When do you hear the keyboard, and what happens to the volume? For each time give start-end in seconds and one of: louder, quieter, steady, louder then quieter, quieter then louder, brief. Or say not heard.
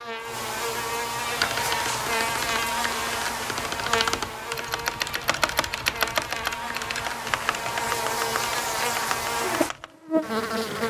1.4-9.9 louder then quieter.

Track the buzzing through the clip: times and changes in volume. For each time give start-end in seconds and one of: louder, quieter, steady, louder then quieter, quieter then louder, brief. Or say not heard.
0.0-10.8 quieter then louder.